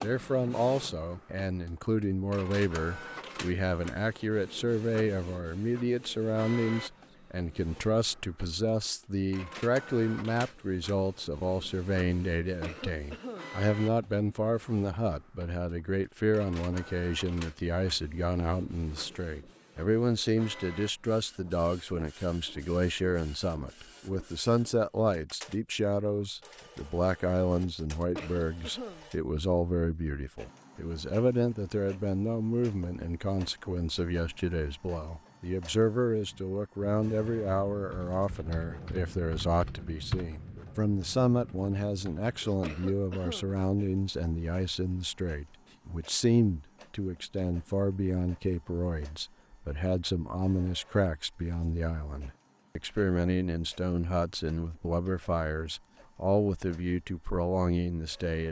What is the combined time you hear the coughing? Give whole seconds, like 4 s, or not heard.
3 s.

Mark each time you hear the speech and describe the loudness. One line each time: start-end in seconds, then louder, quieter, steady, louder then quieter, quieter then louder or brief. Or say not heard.
0.0-58.4 steady.